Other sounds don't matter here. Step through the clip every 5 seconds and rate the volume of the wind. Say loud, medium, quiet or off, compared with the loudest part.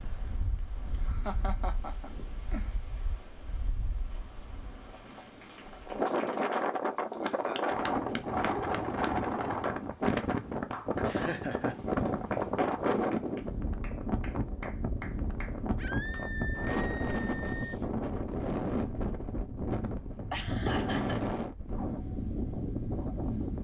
quiet, loud, loud, loud, loud.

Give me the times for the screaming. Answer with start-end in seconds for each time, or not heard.
15.8-17.8.